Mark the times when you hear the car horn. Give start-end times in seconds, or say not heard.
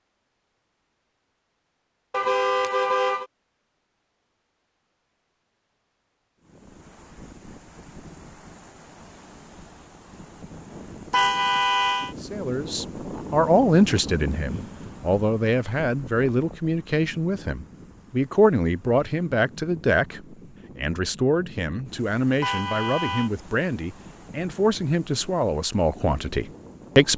2.1-3.2, 11.1-12.2, 22.4-23.3.